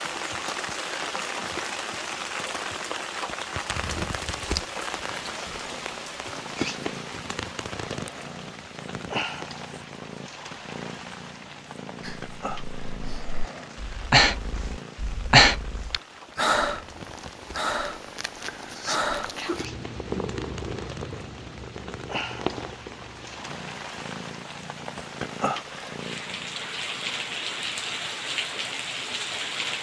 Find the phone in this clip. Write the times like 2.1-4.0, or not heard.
not heard.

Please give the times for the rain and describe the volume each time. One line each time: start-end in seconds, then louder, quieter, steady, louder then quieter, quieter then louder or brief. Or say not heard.
0.0-29.7 quieter then louder.